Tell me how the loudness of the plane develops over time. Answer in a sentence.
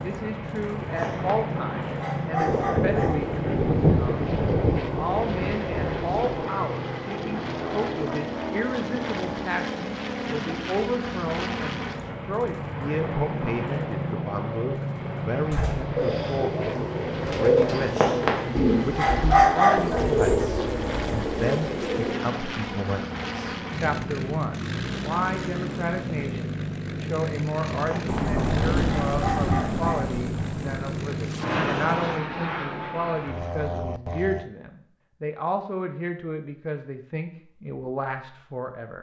The loudness of the plane stays about the same.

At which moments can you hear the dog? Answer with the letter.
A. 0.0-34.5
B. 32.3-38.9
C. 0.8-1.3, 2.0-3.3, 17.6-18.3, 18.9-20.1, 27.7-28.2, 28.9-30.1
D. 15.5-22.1
C.